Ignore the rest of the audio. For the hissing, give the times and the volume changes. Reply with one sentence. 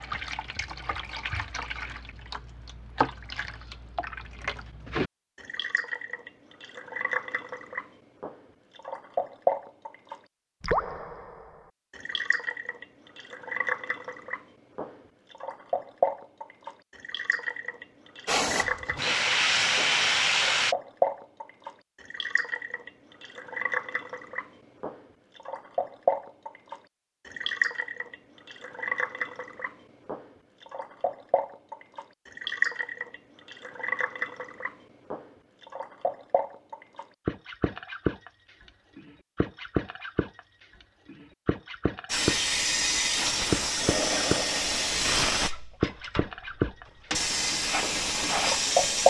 You can hear the hissing briefly from 18.2 to 20.8 s; and from 42.0 to 49.0 s, at a steady volume.